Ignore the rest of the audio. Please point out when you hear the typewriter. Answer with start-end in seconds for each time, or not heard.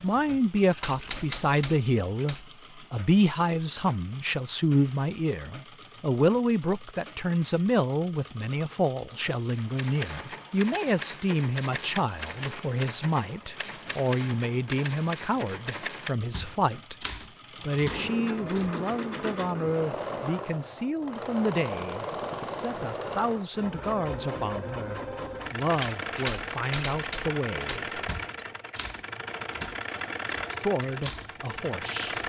0.0-2.5, 9.4-18.9, 25.7-32.2.